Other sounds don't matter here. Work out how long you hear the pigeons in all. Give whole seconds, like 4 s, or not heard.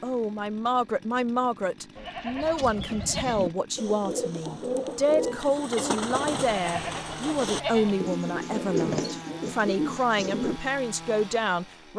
8 s.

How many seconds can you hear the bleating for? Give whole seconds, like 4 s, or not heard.
3 s.